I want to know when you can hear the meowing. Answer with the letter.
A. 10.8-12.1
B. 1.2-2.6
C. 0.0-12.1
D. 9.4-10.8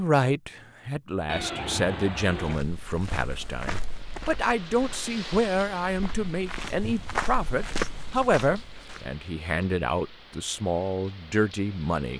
B.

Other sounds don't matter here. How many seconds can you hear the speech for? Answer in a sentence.
The speech can be heard for 12 seconds in total.